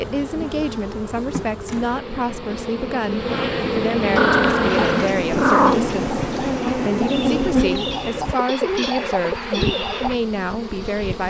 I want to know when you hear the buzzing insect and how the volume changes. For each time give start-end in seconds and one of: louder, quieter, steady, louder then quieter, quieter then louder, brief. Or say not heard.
0.0-11.2 louder then quieter.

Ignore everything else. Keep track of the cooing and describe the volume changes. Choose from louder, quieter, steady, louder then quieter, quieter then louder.
louder.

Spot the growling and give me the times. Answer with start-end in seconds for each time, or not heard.
4.2-6.0.